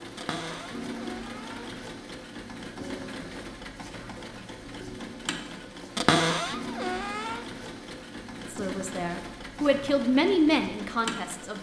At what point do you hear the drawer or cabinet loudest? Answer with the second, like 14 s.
6 s.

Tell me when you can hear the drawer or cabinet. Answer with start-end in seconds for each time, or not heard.
0.1-1.9, 6.0-7.5.